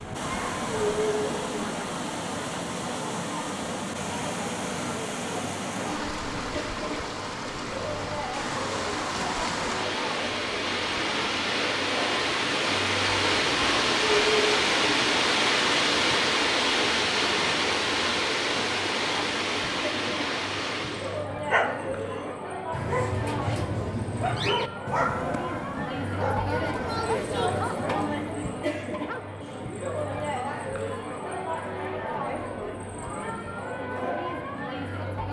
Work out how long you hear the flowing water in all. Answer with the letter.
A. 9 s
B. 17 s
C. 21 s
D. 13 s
C.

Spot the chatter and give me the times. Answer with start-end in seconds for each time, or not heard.
0.0-35.2.